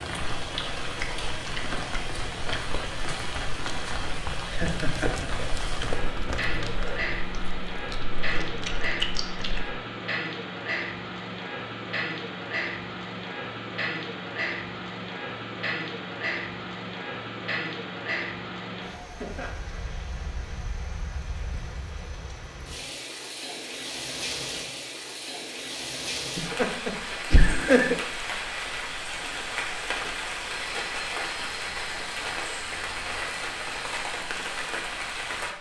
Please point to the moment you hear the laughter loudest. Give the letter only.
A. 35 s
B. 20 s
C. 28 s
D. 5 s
C.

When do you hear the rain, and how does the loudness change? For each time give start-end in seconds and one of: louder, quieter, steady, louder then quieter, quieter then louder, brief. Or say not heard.
0.0-35.5 steady.